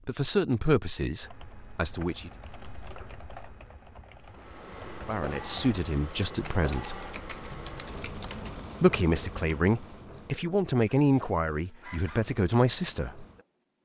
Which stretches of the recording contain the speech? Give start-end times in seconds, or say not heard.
0.1-2.3, 5.0-7.0, 8.8-13.2.